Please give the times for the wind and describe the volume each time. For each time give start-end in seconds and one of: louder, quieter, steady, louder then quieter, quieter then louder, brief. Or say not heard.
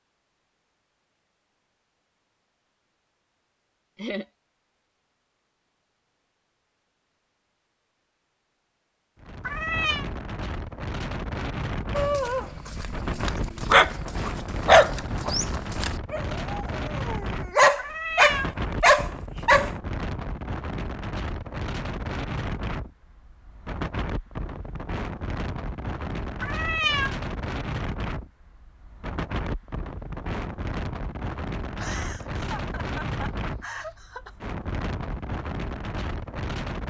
9.2-36.8 steady.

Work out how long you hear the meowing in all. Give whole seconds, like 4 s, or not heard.
2 s.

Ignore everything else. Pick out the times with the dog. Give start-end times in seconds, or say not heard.
11.9-19.7.